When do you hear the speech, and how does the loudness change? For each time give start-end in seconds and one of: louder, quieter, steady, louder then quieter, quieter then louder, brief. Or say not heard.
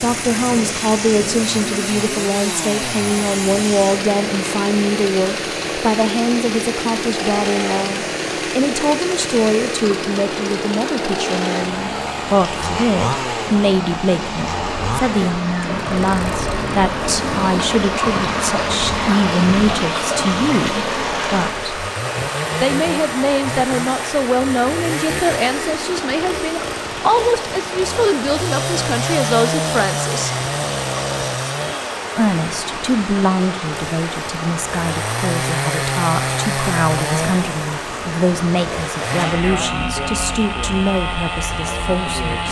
0.0-21.6 steady
22.6-30.3 steady
32.1-42.4 steady.